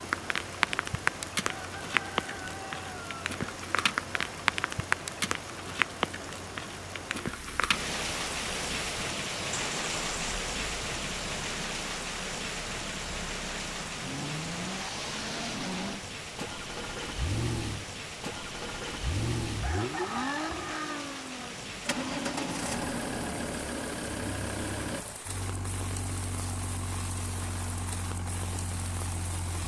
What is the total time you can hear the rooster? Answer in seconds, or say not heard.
3 s.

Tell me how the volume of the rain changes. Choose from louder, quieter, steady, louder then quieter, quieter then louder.
quieter.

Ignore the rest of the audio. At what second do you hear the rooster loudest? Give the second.
20 s.